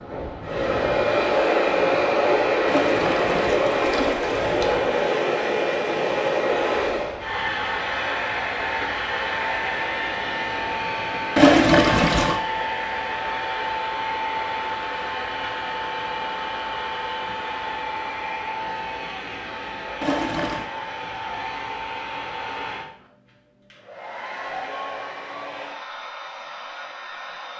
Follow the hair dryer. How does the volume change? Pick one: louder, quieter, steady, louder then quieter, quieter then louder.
quieter.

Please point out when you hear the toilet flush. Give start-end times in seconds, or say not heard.
2.6-4.8, 11.3-12.3, 20.0-20.6.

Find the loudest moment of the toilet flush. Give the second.
12 s.